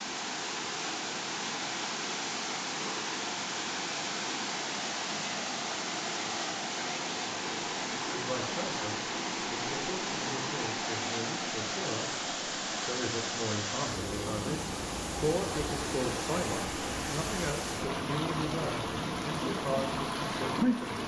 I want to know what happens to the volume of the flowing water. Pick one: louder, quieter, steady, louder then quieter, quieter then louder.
steady.